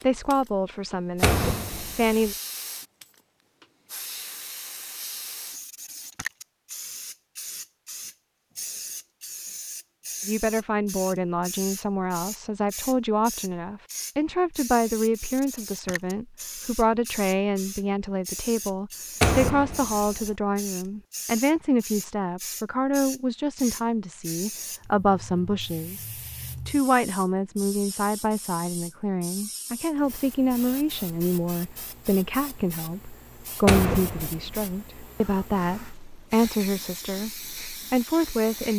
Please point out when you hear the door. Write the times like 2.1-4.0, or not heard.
1.2-2.3, 19.2-20.3, 33.6-34.8.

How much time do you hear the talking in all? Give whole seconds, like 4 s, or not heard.
30 s.